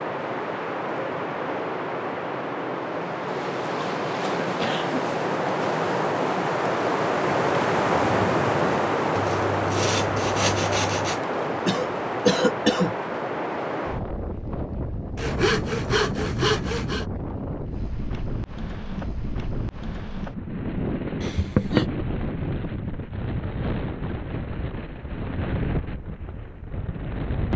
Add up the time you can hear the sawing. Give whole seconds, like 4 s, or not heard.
4 s.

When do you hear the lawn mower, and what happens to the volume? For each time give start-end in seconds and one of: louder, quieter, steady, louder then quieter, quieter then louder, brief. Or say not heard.
not heard.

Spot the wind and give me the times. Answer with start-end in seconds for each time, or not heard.
0.0-27.5.